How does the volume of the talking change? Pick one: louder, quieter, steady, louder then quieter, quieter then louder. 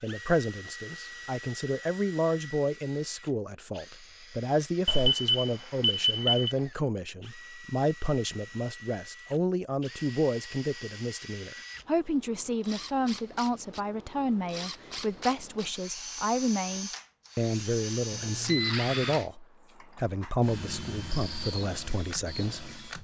steady.